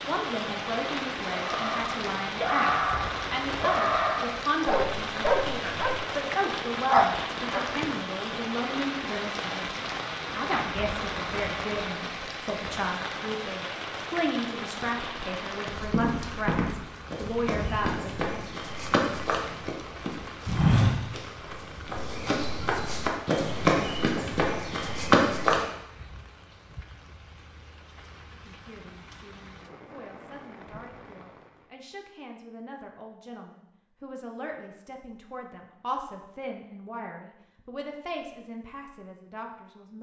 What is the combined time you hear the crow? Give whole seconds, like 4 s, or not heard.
not heard.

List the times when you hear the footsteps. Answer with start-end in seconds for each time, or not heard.
15.8-25.6.